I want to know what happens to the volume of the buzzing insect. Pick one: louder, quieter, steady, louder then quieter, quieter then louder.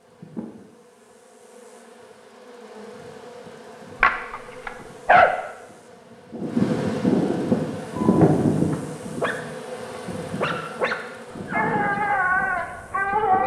louder then quieter.